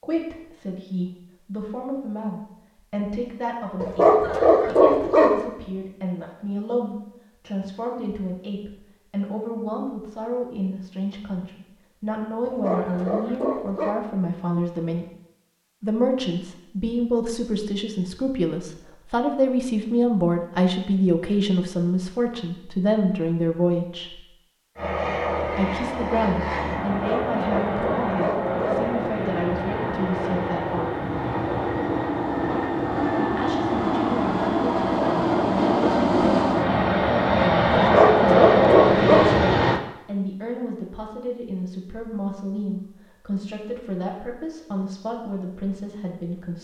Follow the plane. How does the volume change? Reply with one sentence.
The volume of the plane goes up.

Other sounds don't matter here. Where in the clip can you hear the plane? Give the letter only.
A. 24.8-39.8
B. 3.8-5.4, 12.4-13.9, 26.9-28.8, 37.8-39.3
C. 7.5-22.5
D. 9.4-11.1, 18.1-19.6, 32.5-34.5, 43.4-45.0
A.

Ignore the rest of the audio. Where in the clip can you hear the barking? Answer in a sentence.
The barking can be heard from 3.8 to 5.4 s, from 12.4 to 13.9 s, from 26.9 to 28.8 s and from 37.8 to 39.3 s.